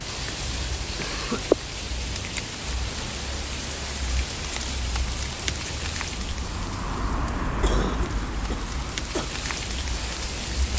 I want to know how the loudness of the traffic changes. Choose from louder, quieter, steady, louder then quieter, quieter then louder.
louder then quieter.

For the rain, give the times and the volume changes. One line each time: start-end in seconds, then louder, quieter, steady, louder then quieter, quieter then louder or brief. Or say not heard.
0.0-10.7 quieter then louder.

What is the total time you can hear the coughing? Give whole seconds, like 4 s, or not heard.
2 s.